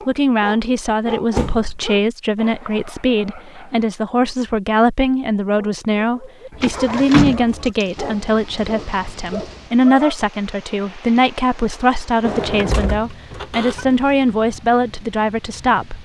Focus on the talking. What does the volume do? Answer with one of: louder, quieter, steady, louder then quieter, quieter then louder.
steady.